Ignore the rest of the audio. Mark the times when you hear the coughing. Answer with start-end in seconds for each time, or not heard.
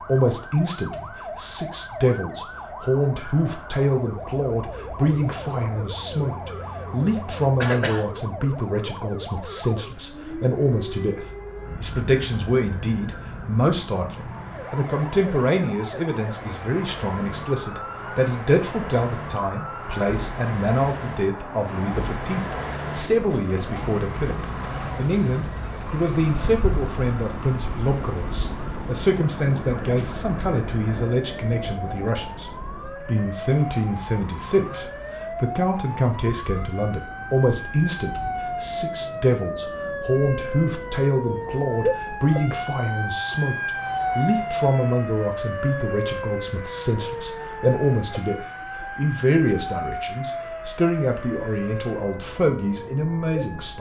7.6-8.1.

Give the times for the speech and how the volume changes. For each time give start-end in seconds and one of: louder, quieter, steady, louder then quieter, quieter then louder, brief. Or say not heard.
0.1-53.7 steady.